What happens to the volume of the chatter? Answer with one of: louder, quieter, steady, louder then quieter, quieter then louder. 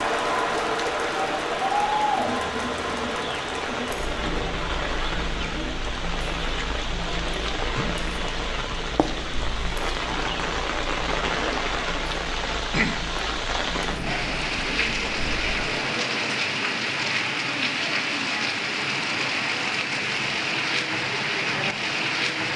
quieter.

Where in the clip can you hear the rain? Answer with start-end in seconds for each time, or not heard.
0.0-22.5.